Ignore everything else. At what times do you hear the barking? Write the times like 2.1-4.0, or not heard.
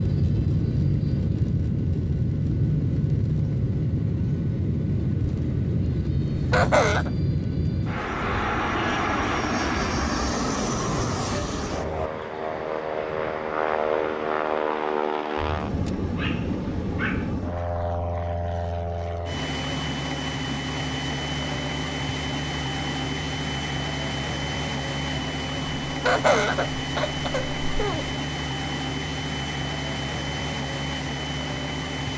15.3-17.4.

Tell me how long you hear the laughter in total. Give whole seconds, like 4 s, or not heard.
3 s.